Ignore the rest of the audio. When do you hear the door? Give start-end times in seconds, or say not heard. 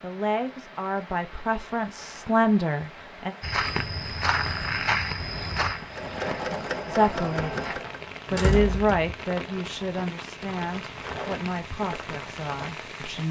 8.2-9.1.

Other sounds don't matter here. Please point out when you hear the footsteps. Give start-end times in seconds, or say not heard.
3.4-12.8.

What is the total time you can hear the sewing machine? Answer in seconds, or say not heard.
2 s.